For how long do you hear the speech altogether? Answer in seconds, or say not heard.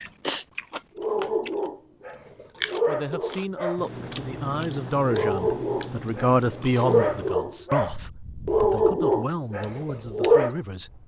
8 s.